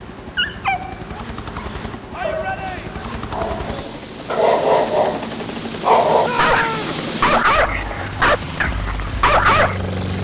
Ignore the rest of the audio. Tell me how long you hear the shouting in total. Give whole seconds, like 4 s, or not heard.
2 s.